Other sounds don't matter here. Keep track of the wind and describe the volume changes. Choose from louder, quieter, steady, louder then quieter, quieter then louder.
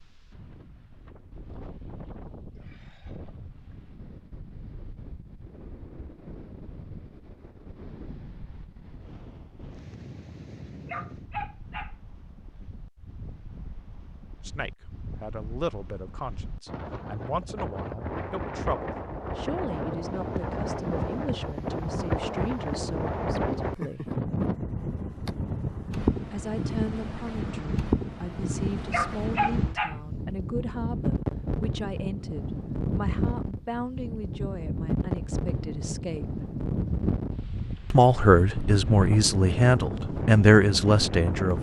louder.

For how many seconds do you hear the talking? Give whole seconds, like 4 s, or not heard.
23 s.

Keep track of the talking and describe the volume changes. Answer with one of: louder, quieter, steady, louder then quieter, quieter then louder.
louder.